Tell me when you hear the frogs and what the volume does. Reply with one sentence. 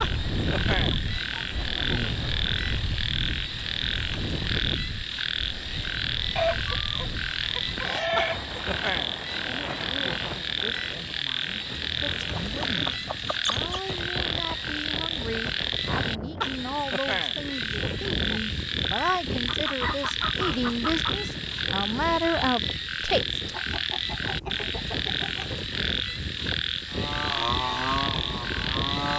You can hear the frogs from 0.0 to 29.1 s, at a steady volume.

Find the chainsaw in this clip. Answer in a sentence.
The chainsaw can be heard from 26.9 to 29.1 s.